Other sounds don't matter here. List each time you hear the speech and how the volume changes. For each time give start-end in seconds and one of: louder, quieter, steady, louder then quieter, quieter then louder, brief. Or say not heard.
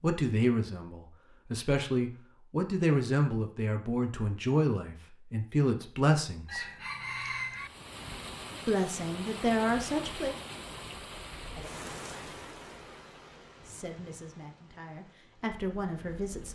0.0-6.7 steady
8.7-10.3 brief
13.7-16.4 brief.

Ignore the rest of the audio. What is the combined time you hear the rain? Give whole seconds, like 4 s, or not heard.
9 s.